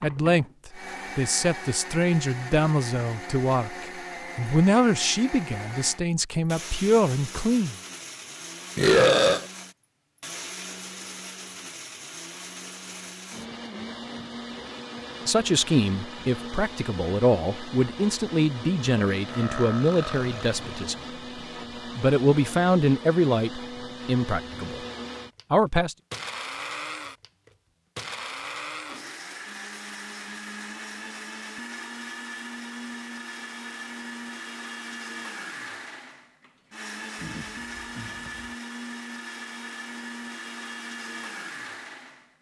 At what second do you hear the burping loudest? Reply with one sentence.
The loudest moment of the burping is at 9 seconds.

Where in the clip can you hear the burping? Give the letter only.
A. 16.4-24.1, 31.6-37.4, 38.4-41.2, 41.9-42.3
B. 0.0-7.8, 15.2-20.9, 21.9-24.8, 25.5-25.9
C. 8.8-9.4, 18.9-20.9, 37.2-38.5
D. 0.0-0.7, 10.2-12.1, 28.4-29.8
C.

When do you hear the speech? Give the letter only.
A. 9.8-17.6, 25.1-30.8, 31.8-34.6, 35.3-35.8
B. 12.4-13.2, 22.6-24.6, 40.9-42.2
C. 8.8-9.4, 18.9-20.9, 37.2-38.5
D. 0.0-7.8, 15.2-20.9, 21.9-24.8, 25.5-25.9
D.